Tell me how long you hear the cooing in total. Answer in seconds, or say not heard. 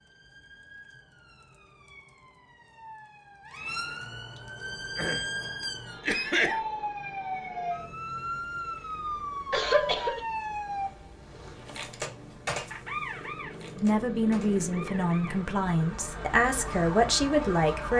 not heard.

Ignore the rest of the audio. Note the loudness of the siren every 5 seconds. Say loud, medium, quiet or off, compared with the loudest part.
medium, loud, loud, loud.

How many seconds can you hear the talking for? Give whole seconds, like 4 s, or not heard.
4 s.